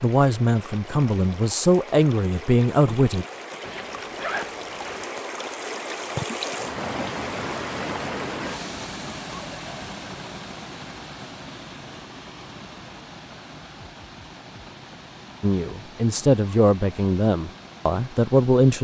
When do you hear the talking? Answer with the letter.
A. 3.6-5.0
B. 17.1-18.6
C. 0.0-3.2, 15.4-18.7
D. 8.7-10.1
C.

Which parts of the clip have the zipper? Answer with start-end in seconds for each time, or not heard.
3.6-5.0.